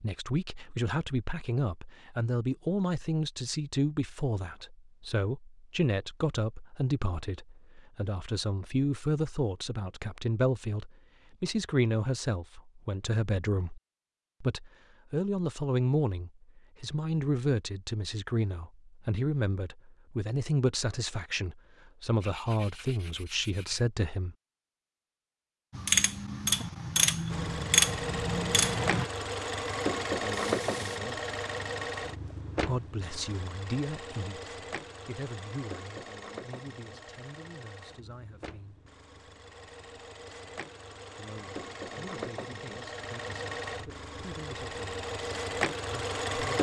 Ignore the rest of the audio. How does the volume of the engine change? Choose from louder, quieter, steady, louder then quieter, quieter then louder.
quieter then louder.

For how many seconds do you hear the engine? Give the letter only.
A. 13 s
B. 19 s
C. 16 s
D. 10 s
B.